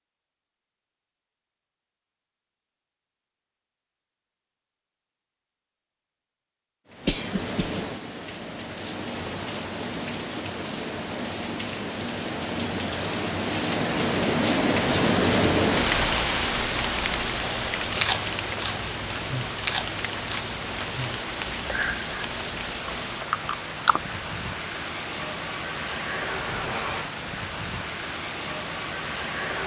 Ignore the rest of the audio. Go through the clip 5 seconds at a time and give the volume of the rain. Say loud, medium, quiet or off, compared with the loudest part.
off, medium, loud, loud, medium, medium.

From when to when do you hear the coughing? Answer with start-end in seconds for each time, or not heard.
7.0-7.8.